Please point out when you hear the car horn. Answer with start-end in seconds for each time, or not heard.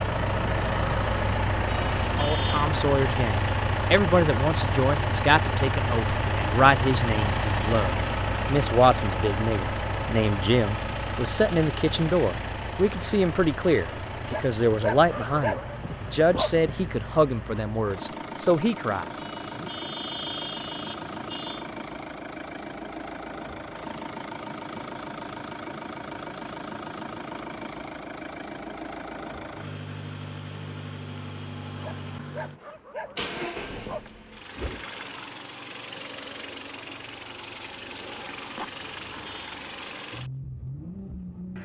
1.6-2.7, 19.1-21.6, 39.0-39.5.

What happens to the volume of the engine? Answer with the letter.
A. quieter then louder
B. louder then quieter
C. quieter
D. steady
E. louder
C.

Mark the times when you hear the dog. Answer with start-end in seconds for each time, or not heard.
14.2-16.9, 31.8-34.0.